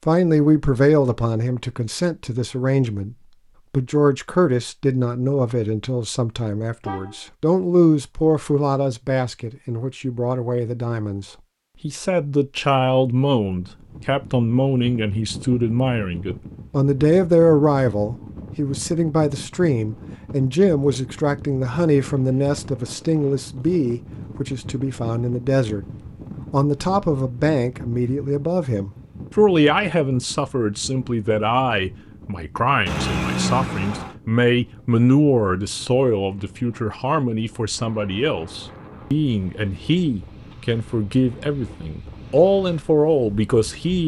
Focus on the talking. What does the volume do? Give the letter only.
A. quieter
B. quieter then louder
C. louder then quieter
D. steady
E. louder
D.